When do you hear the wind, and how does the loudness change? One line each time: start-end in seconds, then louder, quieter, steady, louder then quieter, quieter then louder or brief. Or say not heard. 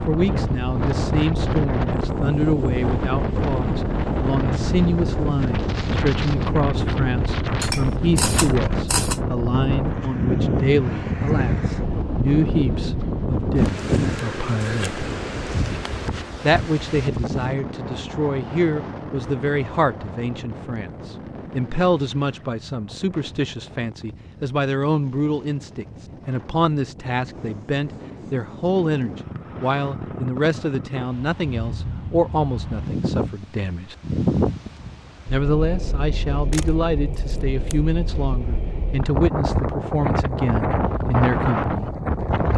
0.0-42.5 quieter then louder.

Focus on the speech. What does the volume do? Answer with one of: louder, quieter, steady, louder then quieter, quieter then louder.
steady.